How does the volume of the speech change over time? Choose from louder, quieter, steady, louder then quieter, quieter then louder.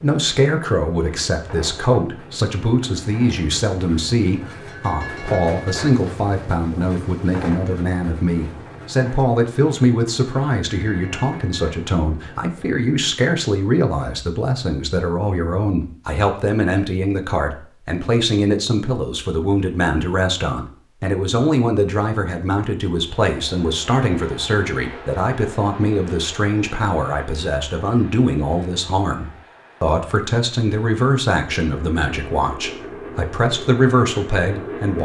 steady.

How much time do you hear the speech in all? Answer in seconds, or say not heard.
35 s.